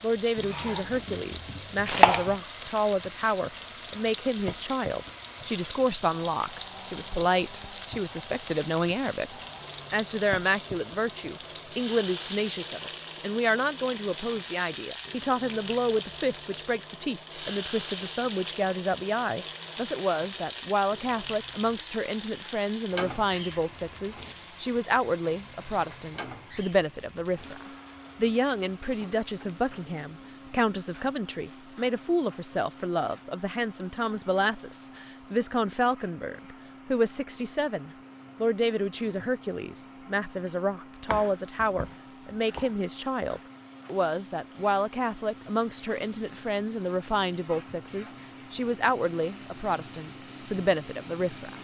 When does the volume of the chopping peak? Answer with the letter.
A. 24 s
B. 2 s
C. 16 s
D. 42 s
B.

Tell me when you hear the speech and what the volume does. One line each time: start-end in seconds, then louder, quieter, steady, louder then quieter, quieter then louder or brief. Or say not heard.
0.0-51.5 steady.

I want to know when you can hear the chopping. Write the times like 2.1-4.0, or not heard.
0.3-2.4, 41.0-42.8.